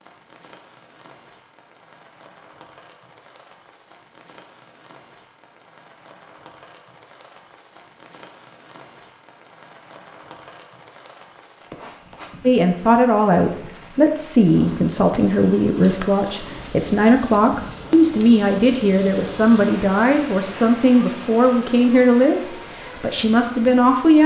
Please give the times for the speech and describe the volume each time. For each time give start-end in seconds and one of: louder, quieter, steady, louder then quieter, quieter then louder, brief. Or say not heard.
12.4-24.2 steady.